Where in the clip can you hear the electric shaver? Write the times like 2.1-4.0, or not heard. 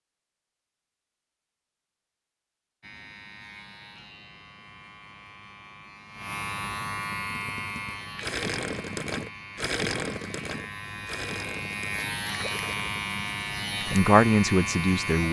2.8-15.2.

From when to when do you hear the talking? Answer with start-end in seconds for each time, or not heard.
13.9-15.2.